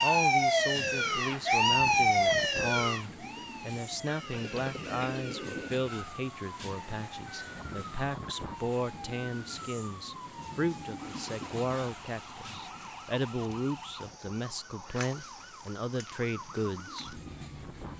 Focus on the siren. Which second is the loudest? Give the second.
2 s.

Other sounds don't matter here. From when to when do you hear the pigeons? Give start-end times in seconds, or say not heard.
4.3-5.8.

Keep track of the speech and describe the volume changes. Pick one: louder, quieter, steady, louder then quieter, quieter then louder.
steady.